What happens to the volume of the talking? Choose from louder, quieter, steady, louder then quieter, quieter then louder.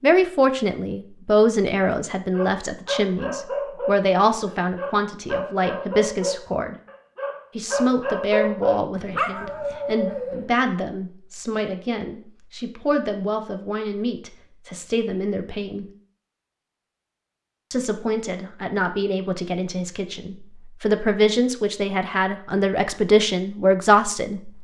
quieter then louder.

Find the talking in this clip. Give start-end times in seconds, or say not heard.
0.0-6.8, 7.5-15.8, 17.7-24.5.